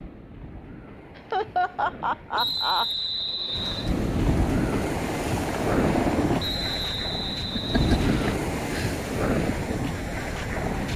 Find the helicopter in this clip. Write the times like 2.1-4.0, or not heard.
4.3-6.4.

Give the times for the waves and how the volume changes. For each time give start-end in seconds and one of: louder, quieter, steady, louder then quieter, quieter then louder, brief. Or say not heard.
0.0-10.9 louder.